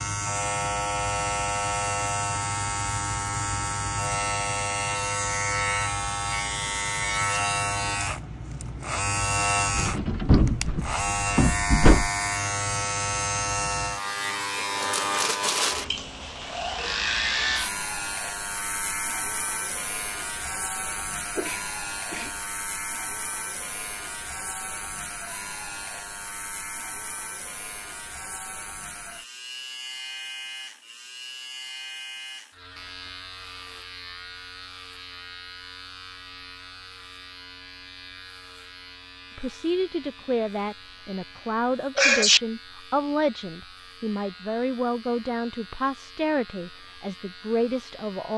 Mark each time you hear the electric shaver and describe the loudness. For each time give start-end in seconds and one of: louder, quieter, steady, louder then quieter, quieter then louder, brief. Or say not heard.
0.0-48.3 quieter.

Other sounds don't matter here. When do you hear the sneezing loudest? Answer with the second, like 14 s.
42 s.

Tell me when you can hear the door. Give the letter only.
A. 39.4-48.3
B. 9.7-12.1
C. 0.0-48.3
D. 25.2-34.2
B.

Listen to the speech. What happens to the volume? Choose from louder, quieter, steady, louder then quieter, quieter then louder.
steady.